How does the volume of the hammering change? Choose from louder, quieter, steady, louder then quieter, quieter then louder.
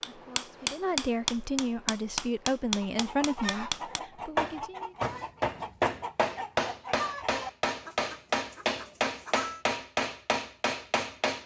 steady.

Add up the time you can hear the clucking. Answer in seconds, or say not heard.
7 s.